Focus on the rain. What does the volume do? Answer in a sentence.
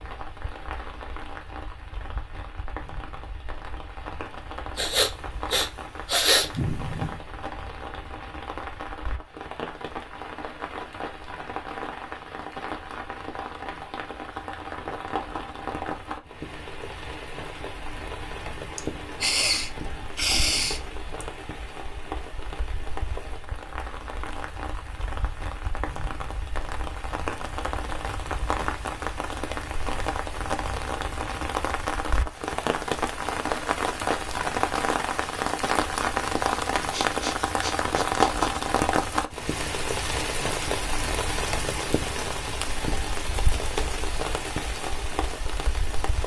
The volume of the rain goes up.